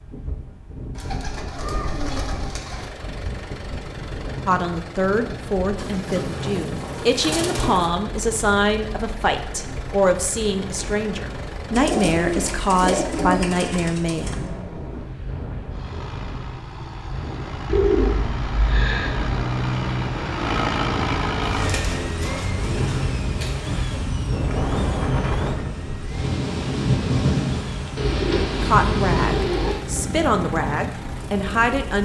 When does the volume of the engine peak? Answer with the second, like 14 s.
21 s.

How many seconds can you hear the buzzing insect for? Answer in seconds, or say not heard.
not heard.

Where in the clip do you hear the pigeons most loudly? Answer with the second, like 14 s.
18 s.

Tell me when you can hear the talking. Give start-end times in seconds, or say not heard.
4.5-14.5, 28.6-32.0.